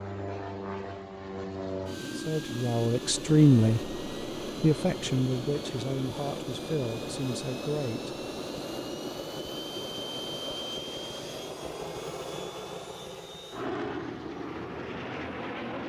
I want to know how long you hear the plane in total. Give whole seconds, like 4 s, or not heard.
16 s.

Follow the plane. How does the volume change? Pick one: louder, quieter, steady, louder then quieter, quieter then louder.
steady.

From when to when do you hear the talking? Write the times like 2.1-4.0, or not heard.
2.1-4.0, 4.6-8.2.